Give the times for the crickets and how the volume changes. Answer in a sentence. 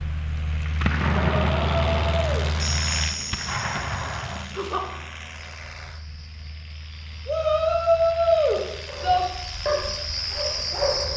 The crickets can be heard from 2.5 to 11.1 s, getting quieter then louder.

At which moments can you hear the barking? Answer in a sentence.
The barking can be heard from 8.9 to 11.1 s.